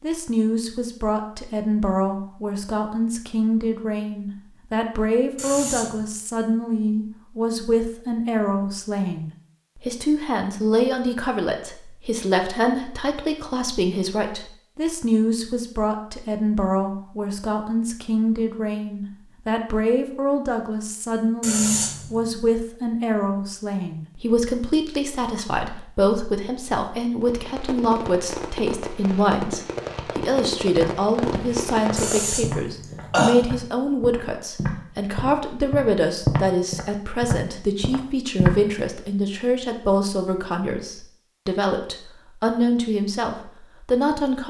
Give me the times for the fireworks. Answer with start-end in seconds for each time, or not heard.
27.2-32.3.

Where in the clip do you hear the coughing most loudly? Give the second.
33 s.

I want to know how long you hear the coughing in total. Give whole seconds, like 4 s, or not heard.
3 s.